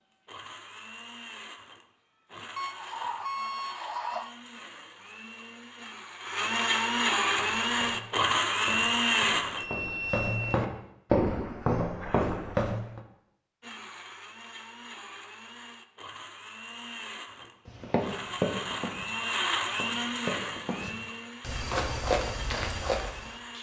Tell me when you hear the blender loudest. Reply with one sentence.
The volume of the blender peaks at 9 seconds.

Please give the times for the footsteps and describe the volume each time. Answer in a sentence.
You can hear the footsteps from 7.2 to 13.0 s, getting louder; and from 17.6 to 23.4 s, getting quieter then louder.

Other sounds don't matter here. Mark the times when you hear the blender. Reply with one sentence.
The blender can be heard from 0.1 to 9.7 s and from 13.6 to 23.5 s.